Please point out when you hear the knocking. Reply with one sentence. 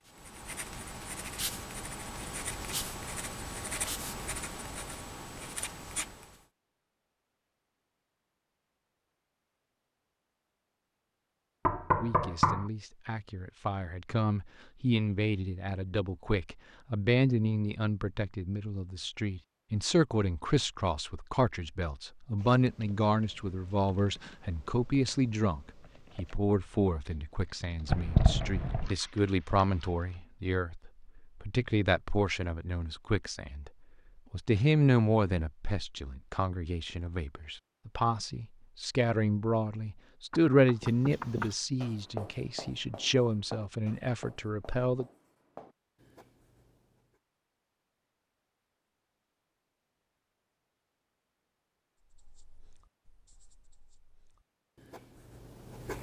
The knocking can be heard from 11.7 to 12.7 s, from 27.9 to 28.9 s and from 40.3 to 41.5 s.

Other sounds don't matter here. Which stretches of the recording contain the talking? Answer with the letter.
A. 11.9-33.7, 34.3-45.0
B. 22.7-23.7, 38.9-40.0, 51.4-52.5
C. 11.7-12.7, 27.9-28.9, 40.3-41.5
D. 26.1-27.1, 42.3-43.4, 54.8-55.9
A.